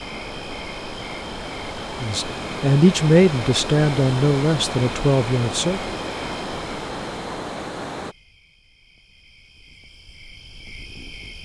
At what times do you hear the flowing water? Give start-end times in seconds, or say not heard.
0.0-8.2.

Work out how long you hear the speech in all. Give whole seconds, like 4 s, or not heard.
4 s.